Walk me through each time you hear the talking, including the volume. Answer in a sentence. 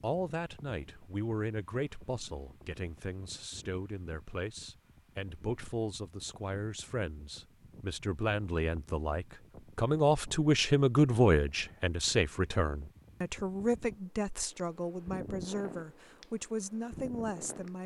The talking can be heard from 0.0 to 17.8 s, getting louder then quieter.